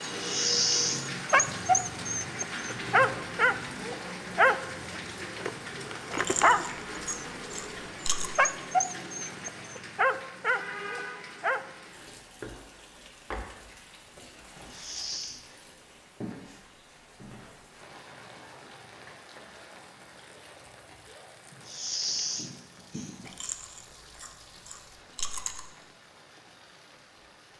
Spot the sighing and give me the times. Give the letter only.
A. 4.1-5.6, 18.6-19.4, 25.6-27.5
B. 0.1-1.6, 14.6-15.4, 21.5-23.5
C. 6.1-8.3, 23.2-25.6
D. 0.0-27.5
B.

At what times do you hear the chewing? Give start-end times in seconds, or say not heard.
6.1-8.3, 23.2-25.6.